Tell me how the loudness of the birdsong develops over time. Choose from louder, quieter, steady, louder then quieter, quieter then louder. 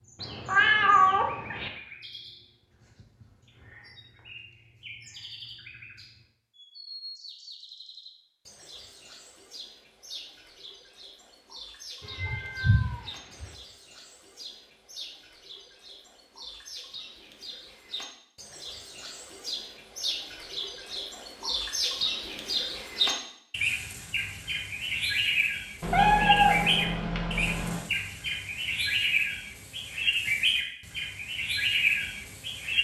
louder.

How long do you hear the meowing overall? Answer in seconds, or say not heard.
5 s.